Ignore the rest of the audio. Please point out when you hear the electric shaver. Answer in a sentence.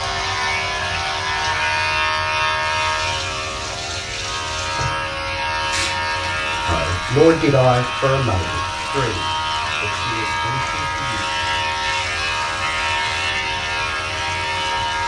You can hear the electric shaver from 0.0 to 15.0 s.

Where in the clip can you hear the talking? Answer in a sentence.
The talking can be heard from 6.7 to 11.2 s.